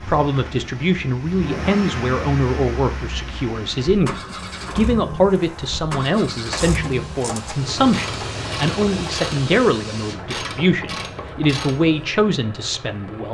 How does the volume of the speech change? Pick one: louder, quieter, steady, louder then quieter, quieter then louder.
steady.